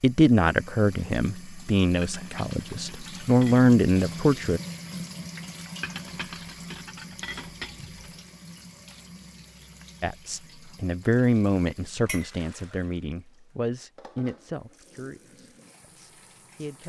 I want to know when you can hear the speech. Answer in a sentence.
The speech can be heard from 0.0 to 4.6 s and from 10.0 to 16.8 s.